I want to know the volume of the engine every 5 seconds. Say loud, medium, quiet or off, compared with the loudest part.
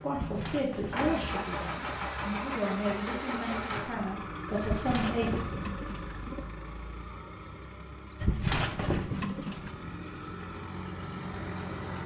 loud, medium, loud.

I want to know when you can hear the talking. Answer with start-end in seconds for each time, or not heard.
0.0-5.2.